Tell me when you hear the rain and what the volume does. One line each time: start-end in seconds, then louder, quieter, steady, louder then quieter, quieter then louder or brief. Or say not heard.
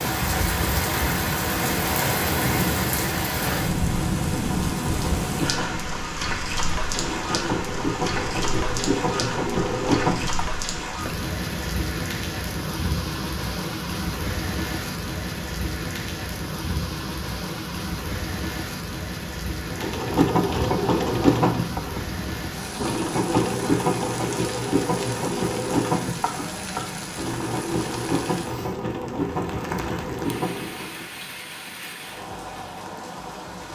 0.0-33.7 quieter.